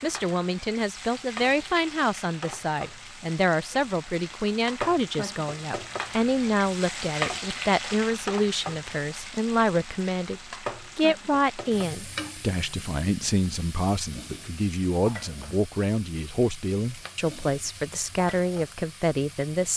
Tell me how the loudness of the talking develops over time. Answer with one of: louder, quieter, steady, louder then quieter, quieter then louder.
steady.